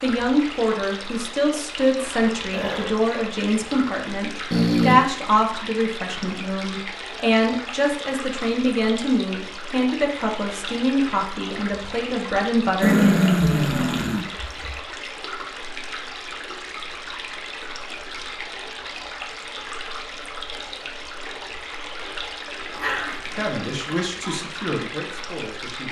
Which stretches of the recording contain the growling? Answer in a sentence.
You can hear the growling from 4.5 to 5.0 s, from 12.8 to 14.7 s and from 22.8 to 24.4 s.